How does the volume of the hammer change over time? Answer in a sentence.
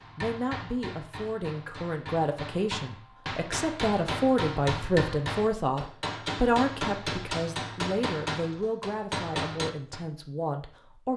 The loudness of the hammer goes up.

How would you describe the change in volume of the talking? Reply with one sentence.
The loudness of the talking goes up, then down.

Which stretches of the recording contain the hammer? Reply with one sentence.
You can hear the hammer from 0.0 to 10.1 s.